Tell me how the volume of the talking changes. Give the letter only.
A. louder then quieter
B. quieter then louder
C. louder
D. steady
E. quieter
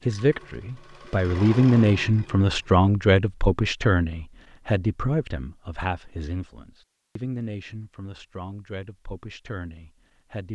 E.